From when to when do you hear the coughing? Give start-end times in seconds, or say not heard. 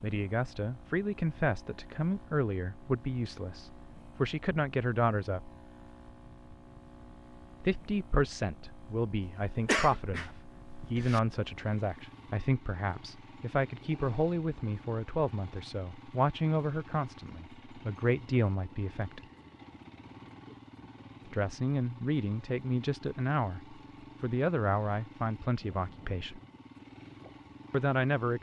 9.2-11.2.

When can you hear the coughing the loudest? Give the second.
10 s.